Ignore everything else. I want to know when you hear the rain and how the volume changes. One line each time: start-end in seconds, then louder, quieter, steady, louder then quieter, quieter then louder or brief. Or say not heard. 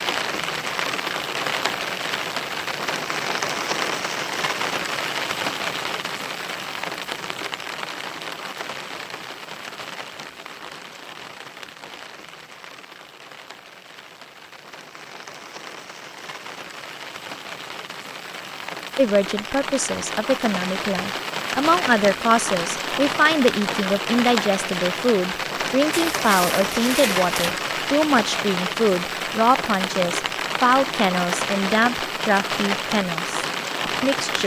0.0-34.4 quieter then louder.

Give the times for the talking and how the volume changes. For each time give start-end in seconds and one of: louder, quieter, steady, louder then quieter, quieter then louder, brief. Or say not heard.
18.9-34.4 steady.